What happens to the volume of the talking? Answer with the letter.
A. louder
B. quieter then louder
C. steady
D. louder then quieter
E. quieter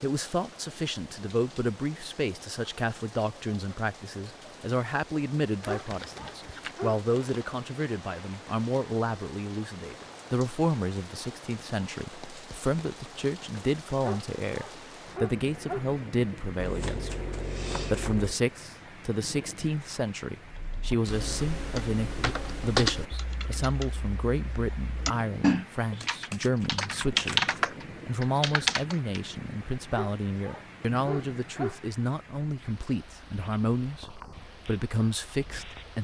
C.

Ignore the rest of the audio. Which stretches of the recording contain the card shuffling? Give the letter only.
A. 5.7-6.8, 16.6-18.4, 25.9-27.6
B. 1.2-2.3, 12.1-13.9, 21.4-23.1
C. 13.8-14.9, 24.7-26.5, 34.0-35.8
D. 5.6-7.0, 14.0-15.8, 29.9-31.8
A.